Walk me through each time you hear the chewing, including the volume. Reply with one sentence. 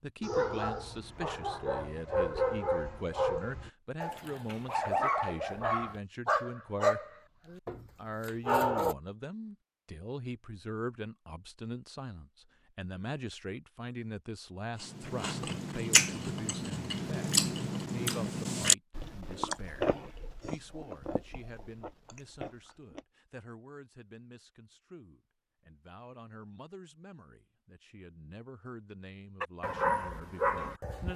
You can hear the chewing from 14.8 to 23.0 s, getting quieter.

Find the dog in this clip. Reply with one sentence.
You can hear the dog from 0.2 to 8.9 s and from 29.4 to 31.1 s.